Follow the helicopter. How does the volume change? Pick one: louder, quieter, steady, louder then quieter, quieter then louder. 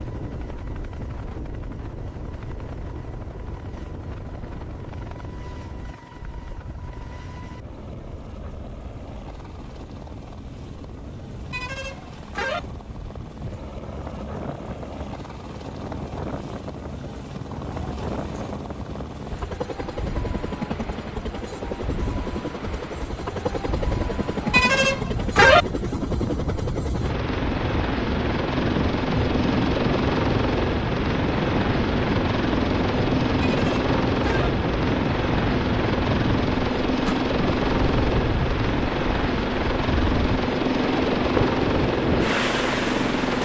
louder.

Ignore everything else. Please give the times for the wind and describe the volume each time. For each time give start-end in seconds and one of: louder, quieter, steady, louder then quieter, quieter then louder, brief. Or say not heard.
0.0-43.4 louder.